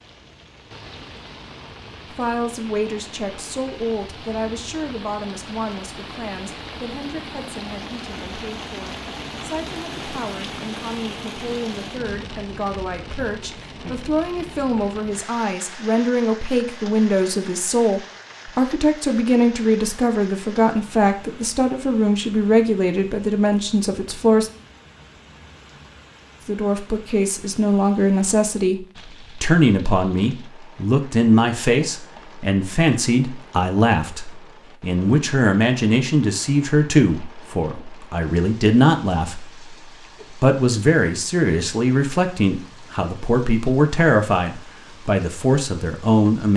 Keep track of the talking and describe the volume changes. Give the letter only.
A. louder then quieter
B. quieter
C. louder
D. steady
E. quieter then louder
C.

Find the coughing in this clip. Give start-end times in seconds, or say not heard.
not heard.